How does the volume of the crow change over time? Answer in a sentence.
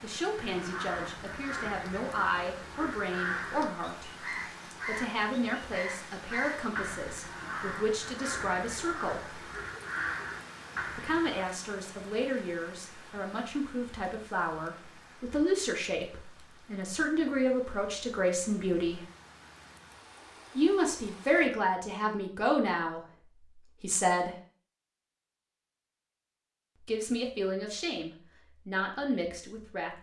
The volume of the crow stays about the same.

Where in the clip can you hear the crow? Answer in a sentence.
The crow can be heard from 0.3 to 11.4 s.